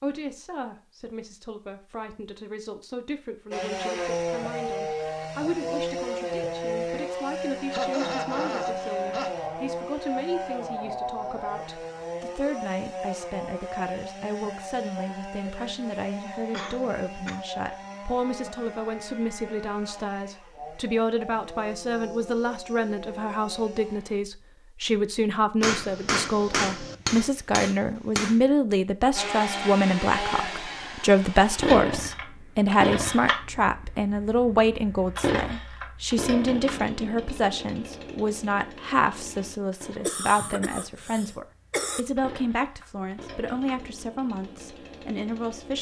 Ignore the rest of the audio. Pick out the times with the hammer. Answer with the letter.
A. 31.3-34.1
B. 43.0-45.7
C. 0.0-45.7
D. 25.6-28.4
D.